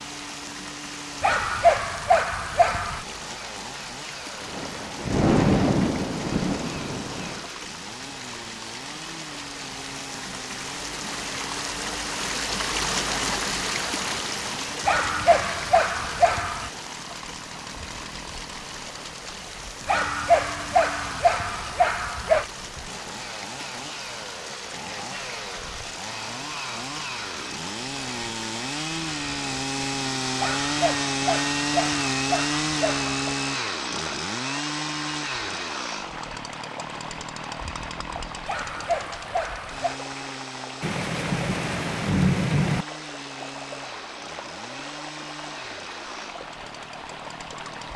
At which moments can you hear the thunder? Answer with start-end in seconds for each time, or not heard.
4.4-7.5, 40.8-42.9.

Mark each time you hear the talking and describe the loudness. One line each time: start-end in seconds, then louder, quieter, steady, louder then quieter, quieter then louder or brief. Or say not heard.
not heard.